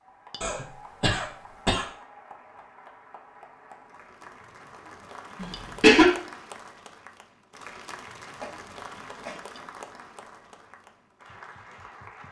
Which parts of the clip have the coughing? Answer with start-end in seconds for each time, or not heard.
0.4-1.9, 5.4-6.1, 8.4-9.4.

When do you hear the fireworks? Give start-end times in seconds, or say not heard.
not heard.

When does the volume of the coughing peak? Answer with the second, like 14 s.
6 s.